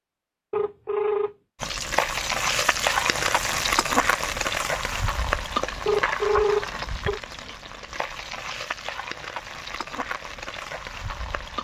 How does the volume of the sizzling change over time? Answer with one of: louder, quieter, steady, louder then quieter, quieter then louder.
quieter.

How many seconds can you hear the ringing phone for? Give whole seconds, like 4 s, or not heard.
2 s.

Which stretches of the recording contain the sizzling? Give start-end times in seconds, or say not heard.
1.6-11.5.